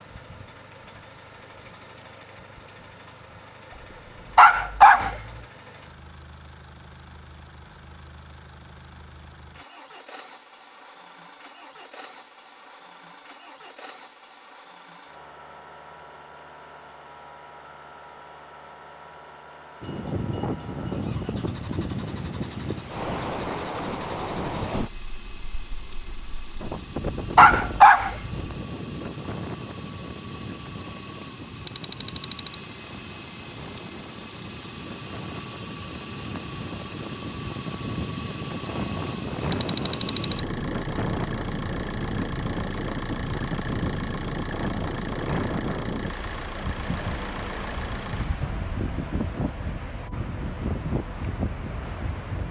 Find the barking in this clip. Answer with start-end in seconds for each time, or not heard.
3.7-5.4, 26.7-28.6.